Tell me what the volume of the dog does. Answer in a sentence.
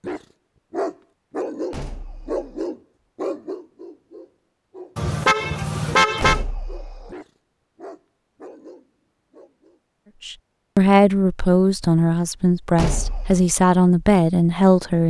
The volume of the dog goes down.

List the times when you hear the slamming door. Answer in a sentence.
You can hear the slamming door from 1.7 to 2.6 s, from 6.2 to 7.2 s and from 12.8 to 13.4 s.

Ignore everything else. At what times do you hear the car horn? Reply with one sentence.
You can hear the car horn from 5.0 to 6.4 s.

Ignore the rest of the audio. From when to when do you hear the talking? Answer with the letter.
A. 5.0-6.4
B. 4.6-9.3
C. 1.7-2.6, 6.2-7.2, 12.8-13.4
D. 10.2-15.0
D.